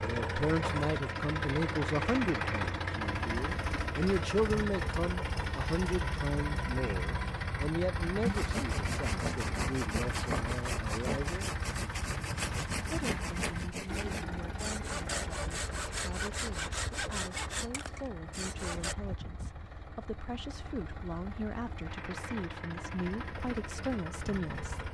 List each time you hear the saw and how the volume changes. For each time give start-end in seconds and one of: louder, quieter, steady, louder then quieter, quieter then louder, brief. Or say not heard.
8.2-18.9 steady.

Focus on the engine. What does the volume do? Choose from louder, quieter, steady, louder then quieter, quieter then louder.
quieter.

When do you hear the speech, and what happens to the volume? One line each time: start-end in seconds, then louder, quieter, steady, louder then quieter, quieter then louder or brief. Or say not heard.
0.0-11.5 quieter
12.8-24.9 louder.